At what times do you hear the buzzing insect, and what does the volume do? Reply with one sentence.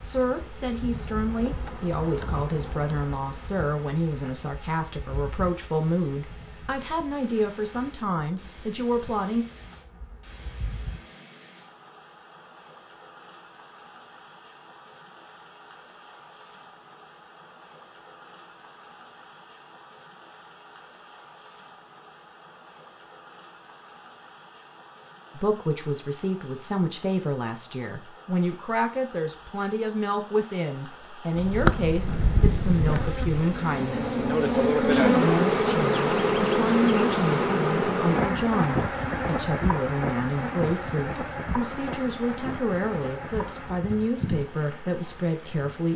You can hear the buzzing insect from 0.0 to 11.1 s, getting quieter; and from 31.4 to 45.9 s, getting louder then quieter.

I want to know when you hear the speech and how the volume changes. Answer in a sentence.
You can hear the speech from 0.0 to 9.4 s, at a steady volume; and from 25.4 to 45.9 s, at a steady volume.